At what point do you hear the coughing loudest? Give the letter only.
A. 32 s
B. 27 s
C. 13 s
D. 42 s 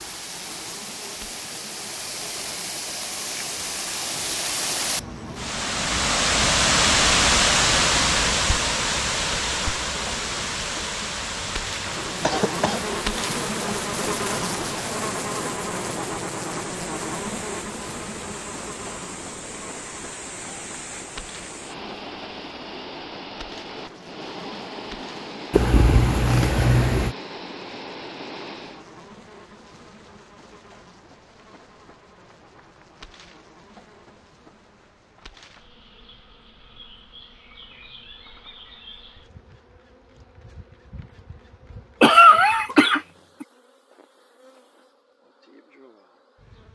D.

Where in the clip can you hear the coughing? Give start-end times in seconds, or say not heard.
12.2-12.8, 25.5-27.1, 42.0-43.5.